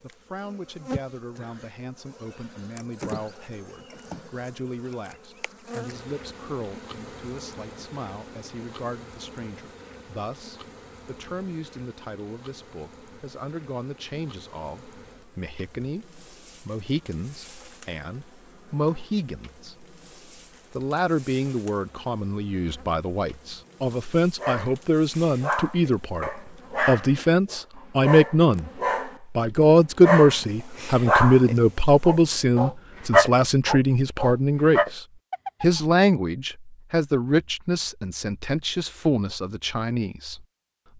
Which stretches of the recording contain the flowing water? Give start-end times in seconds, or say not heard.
not heard.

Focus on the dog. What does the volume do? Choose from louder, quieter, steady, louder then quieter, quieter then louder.
louder.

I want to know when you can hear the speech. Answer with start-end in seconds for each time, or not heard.
0.0-19.9, 20.7-28.7, 29.3-40.9.